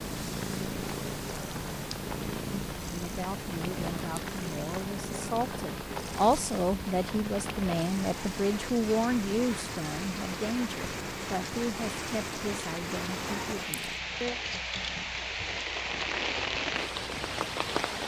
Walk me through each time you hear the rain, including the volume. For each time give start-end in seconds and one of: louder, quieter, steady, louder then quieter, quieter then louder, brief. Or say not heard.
0.0-18.0 louder.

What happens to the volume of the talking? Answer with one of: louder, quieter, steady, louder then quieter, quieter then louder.
louder then quieter.